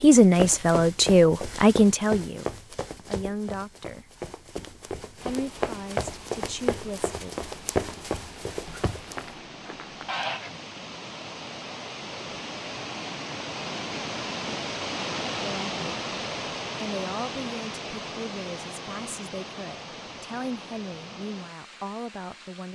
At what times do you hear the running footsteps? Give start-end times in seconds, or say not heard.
0.0-9.3.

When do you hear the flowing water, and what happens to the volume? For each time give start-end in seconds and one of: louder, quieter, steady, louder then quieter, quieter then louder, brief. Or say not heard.
5.2-22.6 louder then quieter.